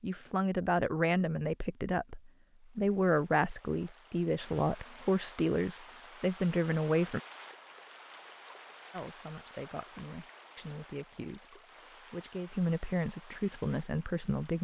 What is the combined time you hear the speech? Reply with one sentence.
The speech can be heard for 13 seconds in total.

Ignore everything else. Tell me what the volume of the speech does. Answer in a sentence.
The loudness of the speech goes down, then up.